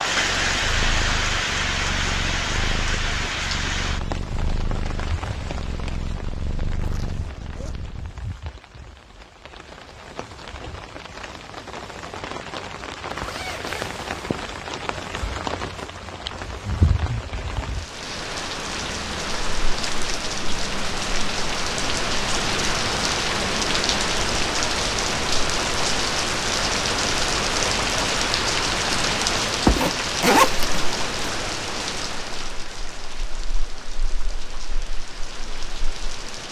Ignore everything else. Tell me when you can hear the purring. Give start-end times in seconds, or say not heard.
0.1-8.2.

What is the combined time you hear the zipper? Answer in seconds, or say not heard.
4 s.